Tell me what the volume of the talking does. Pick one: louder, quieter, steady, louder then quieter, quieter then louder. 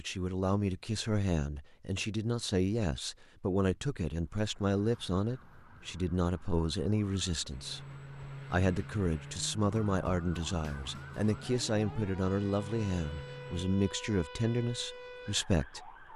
steady.